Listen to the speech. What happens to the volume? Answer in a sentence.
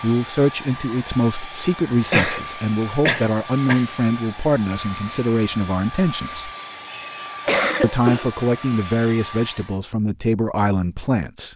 The volume of the speech stays about the same.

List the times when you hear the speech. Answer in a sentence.
The speech can be heard from 0.0 to 6.5 s and from 7.8 to 11.5 s.